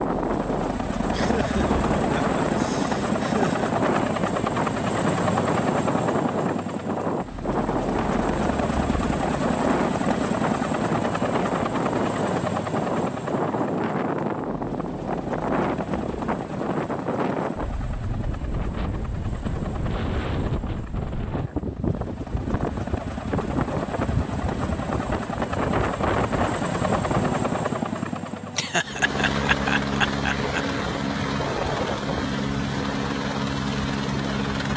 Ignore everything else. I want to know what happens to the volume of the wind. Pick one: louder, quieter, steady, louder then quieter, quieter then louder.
steady.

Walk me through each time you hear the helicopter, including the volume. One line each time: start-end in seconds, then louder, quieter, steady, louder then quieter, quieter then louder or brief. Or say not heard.
0.0-34.7 quieter then louder.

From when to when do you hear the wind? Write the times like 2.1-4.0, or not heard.
0.0-27.5.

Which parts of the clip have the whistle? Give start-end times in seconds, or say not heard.
not heard.